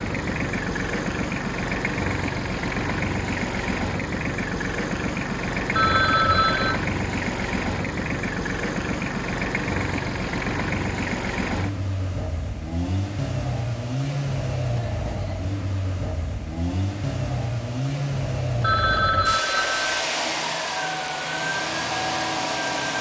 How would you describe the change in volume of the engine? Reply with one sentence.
The loudness of the engine stays about the same.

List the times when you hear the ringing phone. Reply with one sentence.
You can hear the ringing phone from 5.8 to 6.8 s and from 18.6 to 20.1 s.